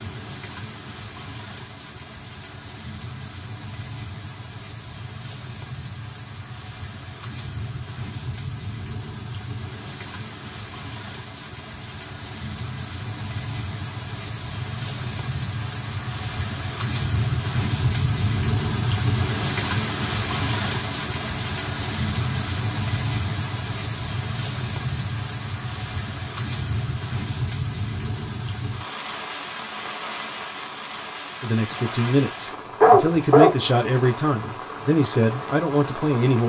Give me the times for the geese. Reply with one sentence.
The geese can't be heard in this clip.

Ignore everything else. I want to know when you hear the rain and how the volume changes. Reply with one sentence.
You can hear the rain from 0.0 to 36.4 s, getting louder then quieter.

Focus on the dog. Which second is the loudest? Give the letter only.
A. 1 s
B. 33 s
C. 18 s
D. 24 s
B.